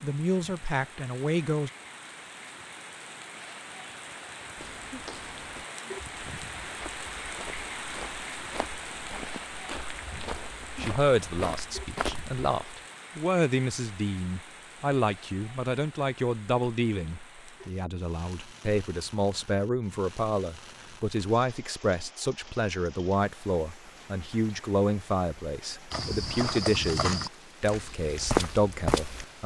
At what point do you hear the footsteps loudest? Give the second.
28 s.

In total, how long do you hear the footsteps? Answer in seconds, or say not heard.
11 s.